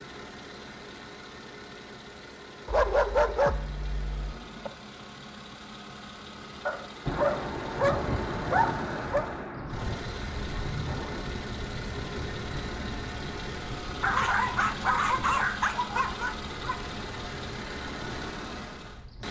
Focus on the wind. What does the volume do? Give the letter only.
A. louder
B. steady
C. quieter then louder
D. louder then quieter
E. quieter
E.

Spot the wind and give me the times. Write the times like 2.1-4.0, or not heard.
7.0-19.2.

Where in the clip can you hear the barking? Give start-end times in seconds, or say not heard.
2.6-4.7, 6.7-9.3, 14.0-16.8.